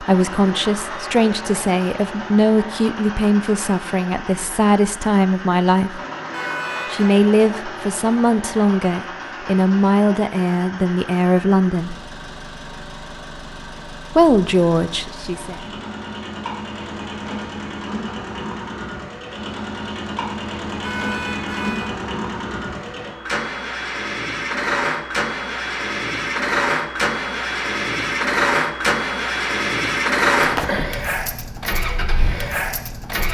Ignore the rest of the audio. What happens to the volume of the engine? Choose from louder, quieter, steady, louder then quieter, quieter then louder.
louder.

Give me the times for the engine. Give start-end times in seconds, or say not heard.
0.0-33.3.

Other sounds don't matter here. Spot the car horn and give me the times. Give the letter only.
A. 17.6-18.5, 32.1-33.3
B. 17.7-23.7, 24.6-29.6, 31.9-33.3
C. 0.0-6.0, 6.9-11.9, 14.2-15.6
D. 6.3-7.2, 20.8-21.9
D.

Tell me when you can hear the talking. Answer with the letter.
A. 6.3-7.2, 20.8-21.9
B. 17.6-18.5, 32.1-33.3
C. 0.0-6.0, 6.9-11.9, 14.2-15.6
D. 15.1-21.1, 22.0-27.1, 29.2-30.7
C.